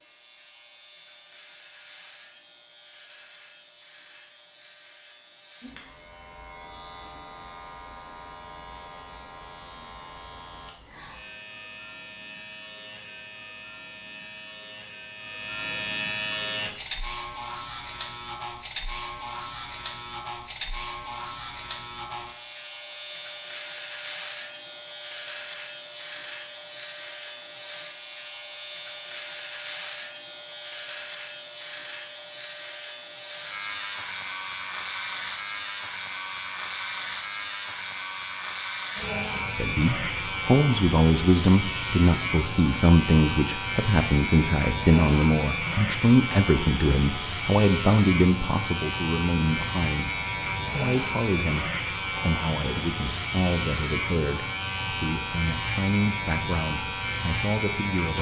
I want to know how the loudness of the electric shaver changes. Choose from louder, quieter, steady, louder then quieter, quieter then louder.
louder.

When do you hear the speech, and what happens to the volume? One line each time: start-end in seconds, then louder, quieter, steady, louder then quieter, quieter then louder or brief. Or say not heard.
39.4-58.1 quieter.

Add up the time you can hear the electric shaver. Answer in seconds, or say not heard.
58 s.